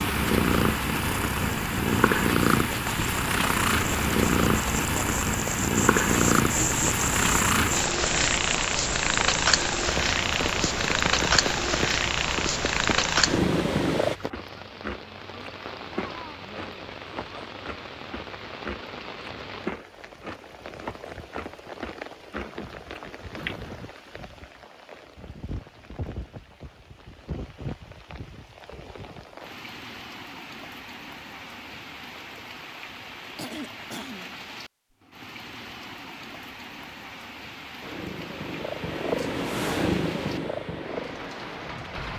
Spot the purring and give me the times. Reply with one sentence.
You can hear the purring from 0.0 to 14.2 s and from 37.8 to 42.1 s.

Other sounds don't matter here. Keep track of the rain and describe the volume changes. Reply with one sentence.
The volume of the rain goes down.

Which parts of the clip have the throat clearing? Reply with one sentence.
The throat clearing can be heard from 33.4 to 34.5 s.